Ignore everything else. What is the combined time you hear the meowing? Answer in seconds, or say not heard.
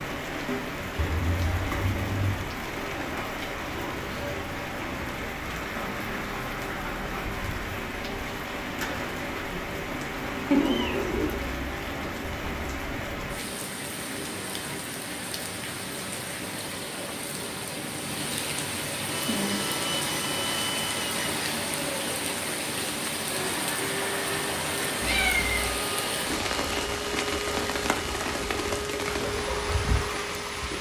3 s.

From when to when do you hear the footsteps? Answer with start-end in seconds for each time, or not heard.
not heard.